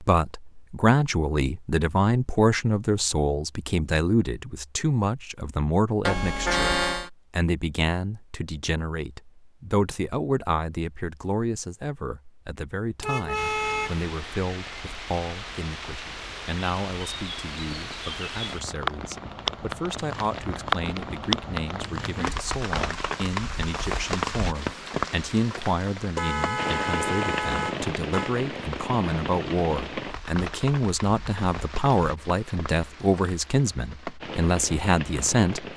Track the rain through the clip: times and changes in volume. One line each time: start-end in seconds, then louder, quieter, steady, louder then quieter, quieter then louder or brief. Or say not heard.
13.3-35.7 louder then quieter.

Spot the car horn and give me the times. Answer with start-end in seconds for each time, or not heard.
6.0-7.1, 13.0-14.1, 26.1-28.4.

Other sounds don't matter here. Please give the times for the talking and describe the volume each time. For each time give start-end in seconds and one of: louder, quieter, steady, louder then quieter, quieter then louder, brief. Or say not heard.
0.0-35.7 quieter then louder.